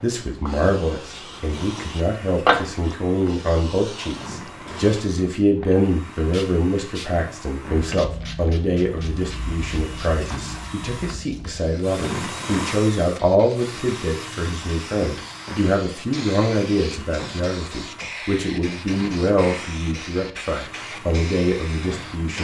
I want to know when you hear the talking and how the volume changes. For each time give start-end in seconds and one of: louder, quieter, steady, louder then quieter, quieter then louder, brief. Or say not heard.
0.0-22.4 steady.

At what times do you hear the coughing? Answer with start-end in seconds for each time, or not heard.
not heard.